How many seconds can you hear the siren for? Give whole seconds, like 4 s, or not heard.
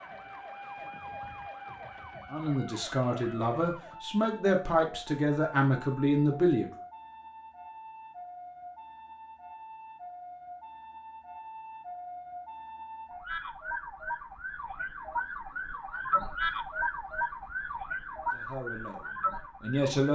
20 s.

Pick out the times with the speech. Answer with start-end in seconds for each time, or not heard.
2.3-6.7, 18.3-20.1.